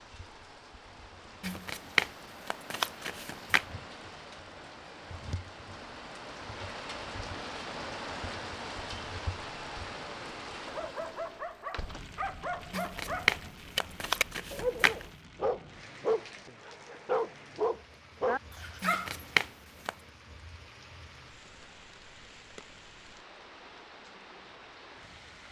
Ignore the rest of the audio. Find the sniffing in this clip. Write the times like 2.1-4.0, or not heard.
not heard.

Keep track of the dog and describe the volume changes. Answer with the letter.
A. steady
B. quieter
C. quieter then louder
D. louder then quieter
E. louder
E.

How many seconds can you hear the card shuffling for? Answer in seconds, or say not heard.
6 s.